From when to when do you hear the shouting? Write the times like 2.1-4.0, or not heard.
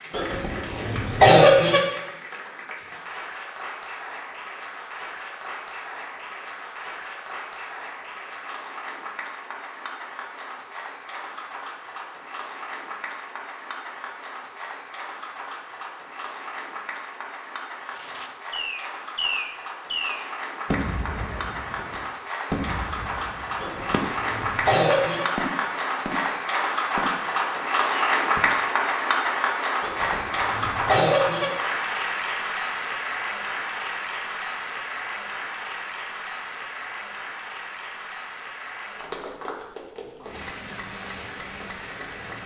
not heard.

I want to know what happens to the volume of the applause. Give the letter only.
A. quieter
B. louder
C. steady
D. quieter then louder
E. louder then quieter
E.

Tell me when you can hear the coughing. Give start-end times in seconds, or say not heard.
0.1-1.8, 23.6-25.2, 29.8-31.5.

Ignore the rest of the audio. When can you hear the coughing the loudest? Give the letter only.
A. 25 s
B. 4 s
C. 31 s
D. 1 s
D.